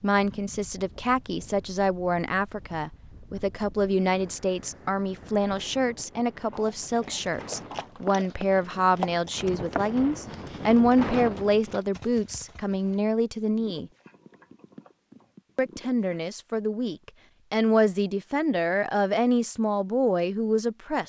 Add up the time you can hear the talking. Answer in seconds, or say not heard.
19 s.